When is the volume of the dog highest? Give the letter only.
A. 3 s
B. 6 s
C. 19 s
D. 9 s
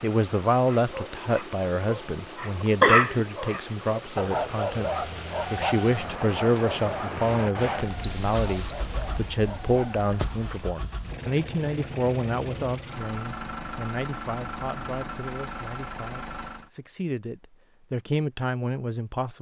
A.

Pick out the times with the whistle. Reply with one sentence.
The whistle can be heard from 8.0 to 8.8 s.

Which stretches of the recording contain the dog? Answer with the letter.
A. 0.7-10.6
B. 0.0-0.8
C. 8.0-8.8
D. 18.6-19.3
A.